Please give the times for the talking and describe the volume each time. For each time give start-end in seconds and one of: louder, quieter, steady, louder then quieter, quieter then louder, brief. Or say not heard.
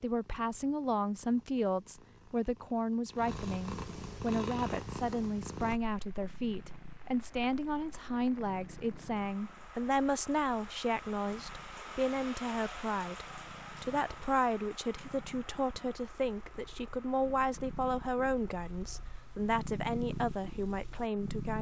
0.0-21.5 steady.